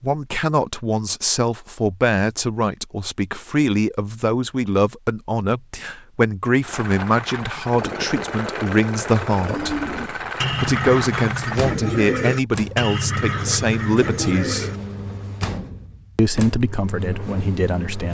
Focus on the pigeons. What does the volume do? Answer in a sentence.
The loudness of the pigeons stays about the same.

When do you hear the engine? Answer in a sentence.
You can hear the engine from 6.6 to 18.0 s.